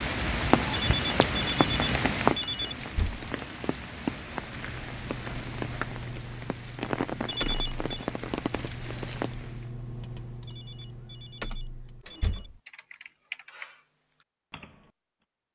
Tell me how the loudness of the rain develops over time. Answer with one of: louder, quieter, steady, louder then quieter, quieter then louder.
quieter.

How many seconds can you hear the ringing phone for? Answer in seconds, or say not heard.
5 s.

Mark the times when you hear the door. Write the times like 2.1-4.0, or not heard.
2.8-3.2, 12.1-12.6.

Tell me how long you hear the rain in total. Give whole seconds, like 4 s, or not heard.
10 s.